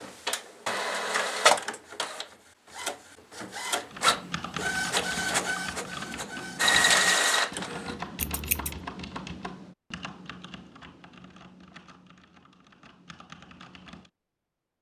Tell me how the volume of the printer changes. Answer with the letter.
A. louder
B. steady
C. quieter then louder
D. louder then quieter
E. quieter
C.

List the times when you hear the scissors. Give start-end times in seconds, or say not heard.
8.2-8.8.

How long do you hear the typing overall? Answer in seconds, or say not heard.
10 s.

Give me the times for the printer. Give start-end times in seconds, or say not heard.
0.0-8.0.